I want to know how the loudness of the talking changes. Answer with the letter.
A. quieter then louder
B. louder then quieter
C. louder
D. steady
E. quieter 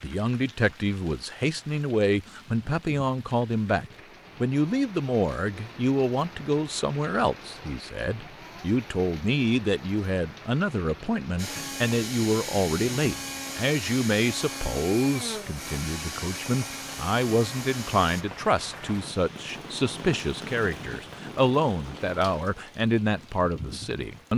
D.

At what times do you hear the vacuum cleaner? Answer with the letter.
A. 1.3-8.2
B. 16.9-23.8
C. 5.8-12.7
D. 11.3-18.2
D.